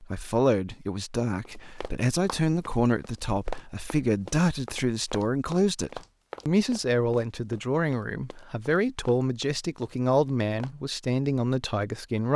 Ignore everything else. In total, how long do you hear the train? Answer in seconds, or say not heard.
not heard.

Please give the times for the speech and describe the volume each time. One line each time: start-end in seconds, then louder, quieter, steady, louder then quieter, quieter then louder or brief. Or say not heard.
0.0-12.3 steady.